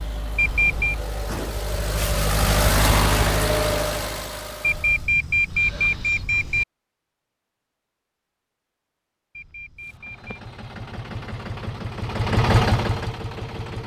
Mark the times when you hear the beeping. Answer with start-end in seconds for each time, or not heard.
0.3-0.9, 4.6-6.7, 9.3-10.3.